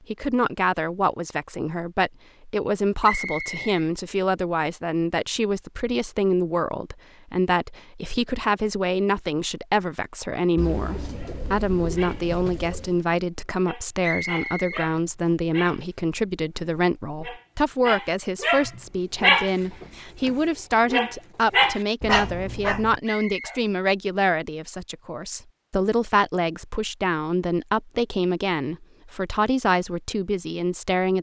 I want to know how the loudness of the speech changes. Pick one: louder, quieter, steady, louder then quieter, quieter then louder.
steady.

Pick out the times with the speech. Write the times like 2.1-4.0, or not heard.
0.1-31.1.